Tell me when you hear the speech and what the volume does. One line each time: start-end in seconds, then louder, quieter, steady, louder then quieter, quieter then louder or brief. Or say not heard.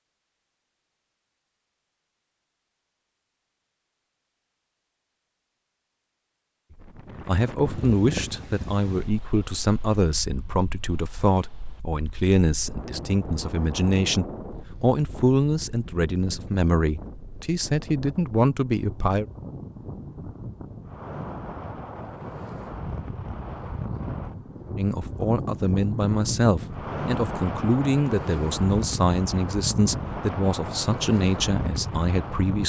7.2-19.2 steady
24.8-32.6 steady.